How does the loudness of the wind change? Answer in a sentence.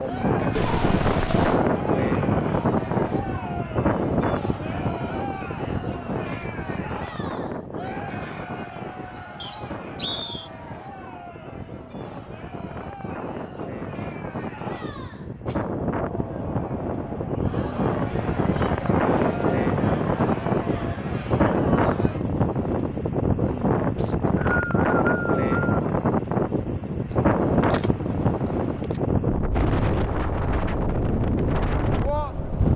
The volume of the wind goes down, then up.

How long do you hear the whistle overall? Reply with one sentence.
The whistle can be heard for 3 seconds in total.